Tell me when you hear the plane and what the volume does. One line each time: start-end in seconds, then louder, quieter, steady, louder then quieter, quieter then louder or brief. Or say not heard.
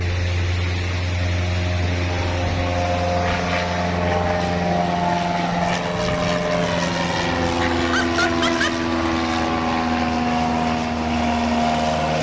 0.0-12.1 louder.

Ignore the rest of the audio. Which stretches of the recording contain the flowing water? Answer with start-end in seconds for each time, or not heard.
0.0-12.1.